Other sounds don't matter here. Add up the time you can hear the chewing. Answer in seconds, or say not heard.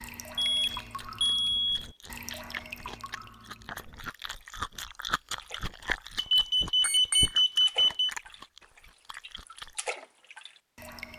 9 s.